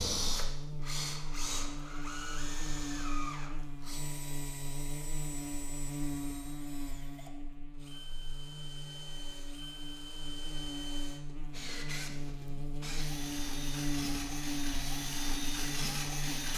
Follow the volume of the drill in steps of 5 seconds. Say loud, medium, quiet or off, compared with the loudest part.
loud, quiet, medium, loud.